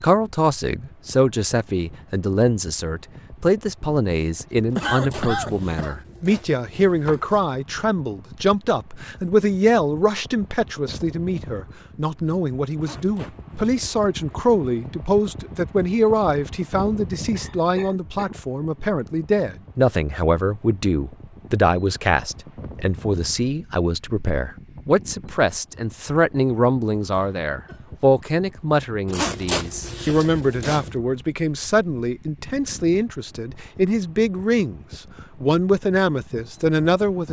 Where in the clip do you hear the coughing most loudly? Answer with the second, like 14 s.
5 s.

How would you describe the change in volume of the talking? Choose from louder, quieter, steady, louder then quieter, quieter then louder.
steady.